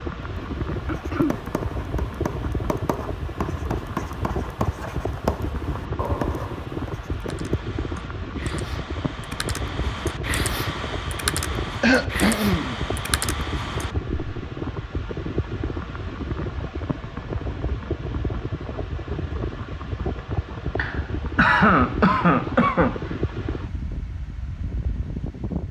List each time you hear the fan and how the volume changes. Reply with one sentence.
You can hear the fan from 0.0 to 25.6 s, at a steady volume.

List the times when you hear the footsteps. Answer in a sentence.
You can't hear the footsteps here.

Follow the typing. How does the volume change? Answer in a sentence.
The loudness of the typing goes up.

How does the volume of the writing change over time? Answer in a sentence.
The volume of the writing goes up.